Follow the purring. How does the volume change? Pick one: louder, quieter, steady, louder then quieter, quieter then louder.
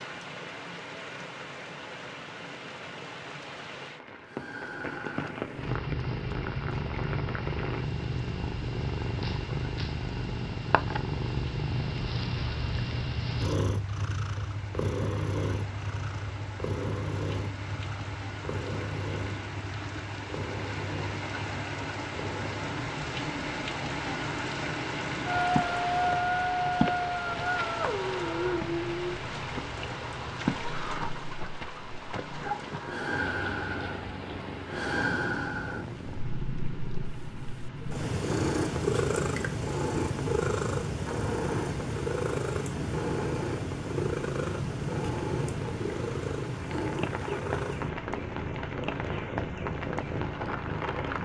quieter then louder.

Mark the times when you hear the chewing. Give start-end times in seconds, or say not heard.
not heard.